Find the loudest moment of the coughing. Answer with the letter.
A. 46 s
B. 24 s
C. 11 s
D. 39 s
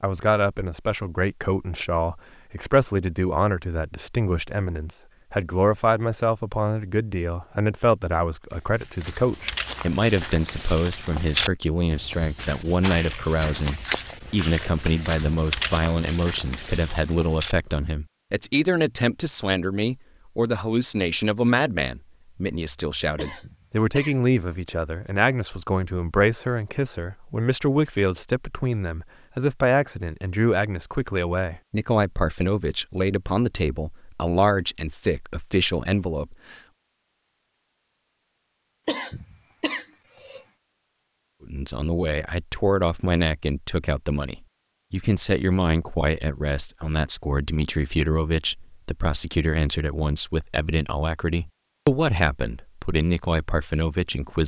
D.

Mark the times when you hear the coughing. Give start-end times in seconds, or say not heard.
23.1-24.1, 38.9-40.4.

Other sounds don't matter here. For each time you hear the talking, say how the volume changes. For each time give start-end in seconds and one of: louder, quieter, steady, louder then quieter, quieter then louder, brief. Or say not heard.
0.0-36.5 steady
41.5-54.4 steady.